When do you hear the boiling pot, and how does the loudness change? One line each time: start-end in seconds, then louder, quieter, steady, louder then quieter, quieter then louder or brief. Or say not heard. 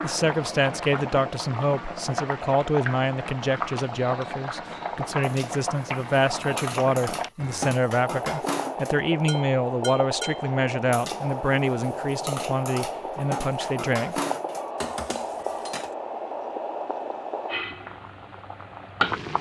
0.0-19.3 steady.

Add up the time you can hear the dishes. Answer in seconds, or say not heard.
11 s.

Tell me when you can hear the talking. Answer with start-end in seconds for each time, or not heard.
0.0-14.2.